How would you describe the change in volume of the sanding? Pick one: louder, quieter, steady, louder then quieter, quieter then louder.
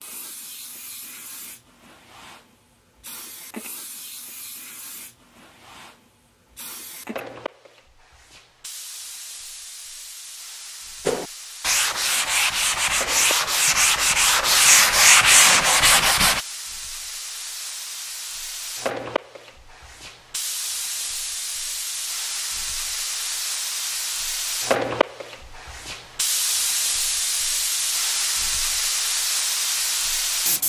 louder.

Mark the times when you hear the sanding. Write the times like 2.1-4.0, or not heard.
11.1-16.4.